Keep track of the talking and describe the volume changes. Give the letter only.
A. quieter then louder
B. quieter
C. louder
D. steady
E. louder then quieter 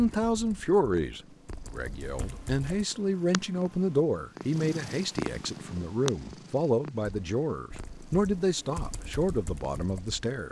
D.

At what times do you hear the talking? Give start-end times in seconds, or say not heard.
0.0-10.4.